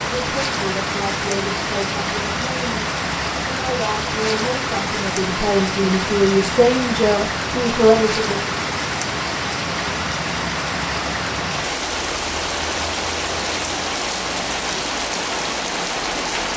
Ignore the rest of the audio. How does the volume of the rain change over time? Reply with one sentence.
The volume of the rain stays about the same.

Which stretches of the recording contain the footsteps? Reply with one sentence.
The footsteps can't be heard in this clip.